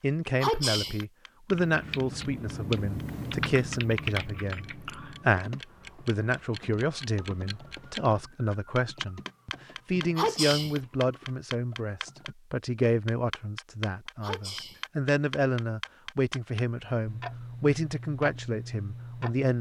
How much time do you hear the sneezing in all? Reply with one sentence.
The sneezing can be heard for 2 seconds in total.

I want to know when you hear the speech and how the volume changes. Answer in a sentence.
You can hear the speech from 0.0 to 19.5 s, at a steady volume.